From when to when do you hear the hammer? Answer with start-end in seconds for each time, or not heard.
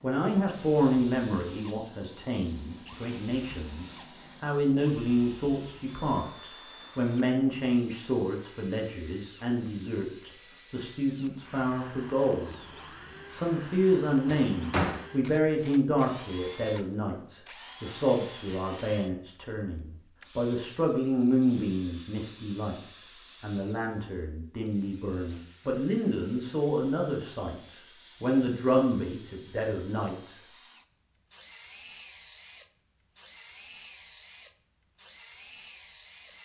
not heard.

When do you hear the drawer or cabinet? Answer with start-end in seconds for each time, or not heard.
14.2-15.1.